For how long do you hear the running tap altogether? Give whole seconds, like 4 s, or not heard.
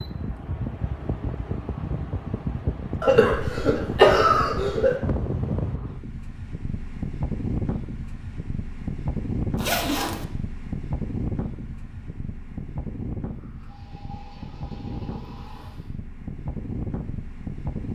3 s.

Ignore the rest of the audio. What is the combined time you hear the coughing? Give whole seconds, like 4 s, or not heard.
2 s.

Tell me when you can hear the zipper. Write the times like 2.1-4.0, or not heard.
9.6-10.2.